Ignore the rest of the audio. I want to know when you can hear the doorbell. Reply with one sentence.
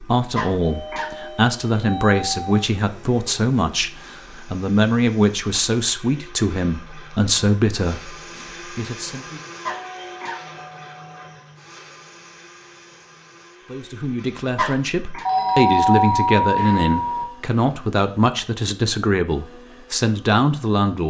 The doorbell can be heard from 0.6 to 2.6 s, from 9.8 to 11.4 s and from 15.2 to 17.2 s.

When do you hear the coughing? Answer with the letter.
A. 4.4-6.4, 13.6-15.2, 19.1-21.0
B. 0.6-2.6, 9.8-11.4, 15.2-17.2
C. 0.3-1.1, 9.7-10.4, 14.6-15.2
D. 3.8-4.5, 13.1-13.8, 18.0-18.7
C.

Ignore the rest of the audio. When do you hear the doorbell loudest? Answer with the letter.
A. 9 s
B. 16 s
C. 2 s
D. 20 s
B.